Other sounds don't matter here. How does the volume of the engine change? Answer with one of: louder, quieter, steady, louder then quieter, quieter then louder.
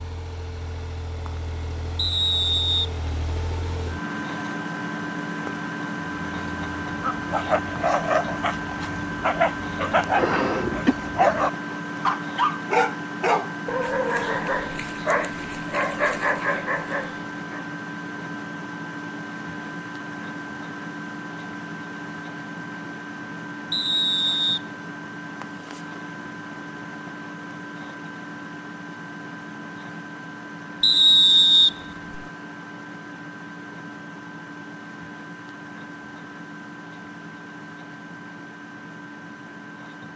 quieter.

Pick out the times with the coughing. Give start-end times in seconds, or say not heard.
10.2-10.9.